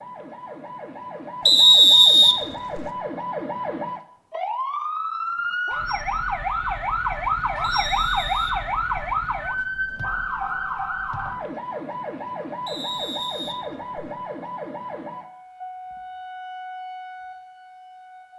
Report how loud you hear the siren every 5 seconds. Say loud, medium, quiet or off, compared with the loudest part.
medium, loud, medium, quiet.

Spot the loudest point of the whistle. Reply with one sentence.
The volume of the whistle peaks at 2 seconds.